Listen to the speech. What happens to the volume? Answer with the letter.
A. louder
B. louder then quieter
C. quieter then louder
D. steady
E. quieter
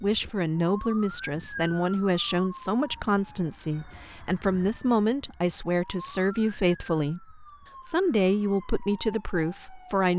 D.